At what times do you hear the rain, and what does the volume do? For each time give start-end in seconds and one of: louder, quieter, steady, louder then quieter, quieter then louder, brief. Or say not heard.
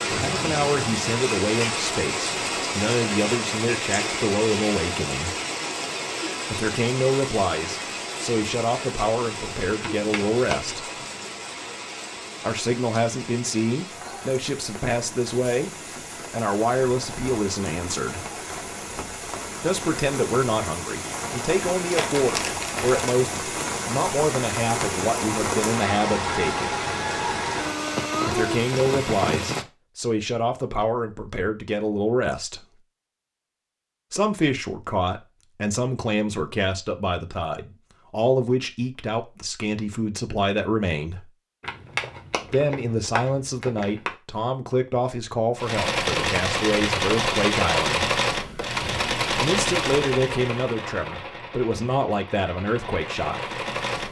0.0-29.6 quieter then louder.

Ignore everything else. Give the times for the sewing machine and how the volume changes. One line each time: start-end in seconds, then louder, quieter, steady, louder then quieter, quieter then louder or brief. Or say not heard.
45.5-54.0 quieter.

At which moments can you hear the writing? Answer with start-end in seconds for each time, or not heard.
not heard.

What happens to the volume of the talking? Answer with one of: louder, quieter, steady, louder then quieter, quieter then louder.
steady.